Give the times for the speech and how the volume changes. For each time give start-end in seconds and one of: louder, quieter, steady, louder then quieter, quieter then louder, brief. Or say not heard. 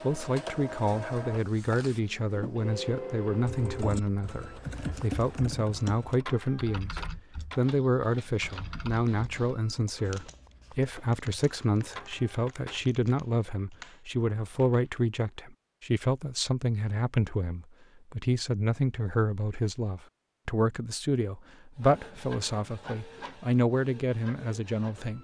0.0-25.1 steady.